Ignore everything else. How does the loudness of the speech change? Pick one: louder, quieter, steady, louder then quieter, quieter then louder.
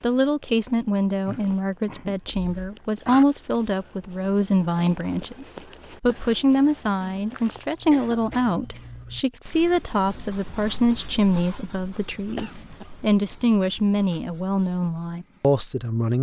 steady.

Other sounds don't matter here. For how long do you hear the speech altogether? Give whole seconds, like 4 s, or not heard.
16 s.